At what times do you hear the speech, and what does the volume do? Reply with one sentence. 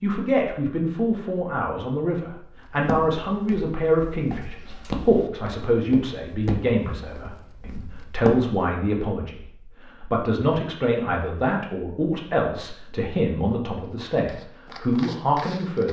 You can hear the speech from 0.0 to 15.8 s, at a steady volume.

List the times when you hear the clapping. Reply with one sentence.
You can't hear the clapping here.